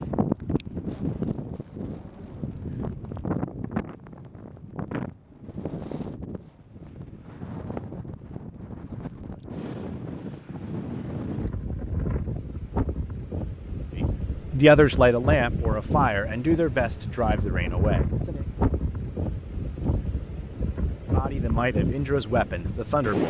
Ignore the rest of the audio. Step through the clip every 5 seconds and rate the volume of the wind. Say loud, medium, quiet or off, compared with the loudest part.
loud, medium, loud, loud, loud.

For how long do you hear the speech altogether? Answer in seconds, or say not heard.
6 s.